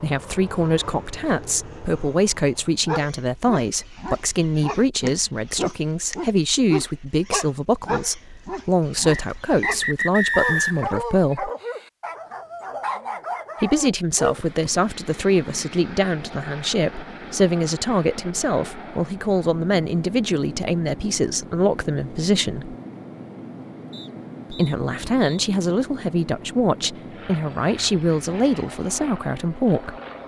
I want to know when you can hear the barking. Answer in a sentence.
The barking can be heard from 2.9 to 14.7 s.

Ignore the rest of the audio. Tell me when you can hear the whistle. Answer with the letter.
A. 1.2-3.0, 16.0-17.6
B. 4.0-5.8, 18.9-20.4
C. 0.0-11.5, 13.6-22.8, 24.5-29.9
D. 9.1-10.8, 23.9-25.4
D.